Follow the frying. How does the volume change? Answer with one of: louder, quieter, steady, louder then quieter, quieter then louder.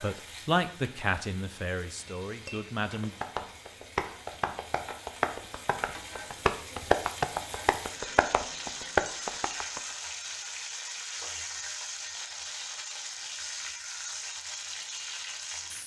louder.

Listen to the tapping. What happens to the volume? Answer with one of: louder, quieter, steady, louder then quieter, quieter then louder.
louder.